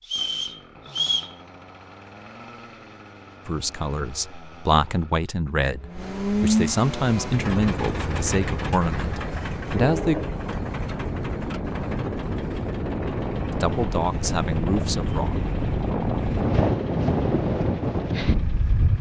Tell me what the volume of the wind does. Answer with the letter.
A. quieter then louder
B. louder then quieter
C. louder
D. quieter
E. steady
C.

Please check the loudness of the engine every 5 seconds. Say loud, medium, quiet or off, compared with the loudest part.
quiet, loud, medium, quiet.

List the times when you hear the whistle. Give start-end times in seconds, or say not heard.
0.0-1.4.